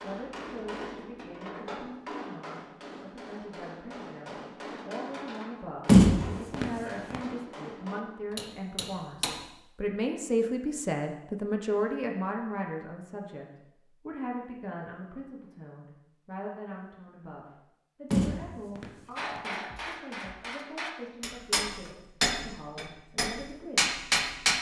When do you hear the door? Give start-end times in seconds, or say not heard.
5.8-7.2, 18.1-19.4.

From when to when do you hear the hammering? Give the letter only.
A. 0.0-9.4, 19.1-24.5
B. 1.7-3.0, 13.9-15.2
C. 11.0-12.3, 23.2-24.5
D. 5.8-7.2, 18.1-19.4
A.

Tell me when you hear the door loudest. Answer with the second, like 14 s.
6 s.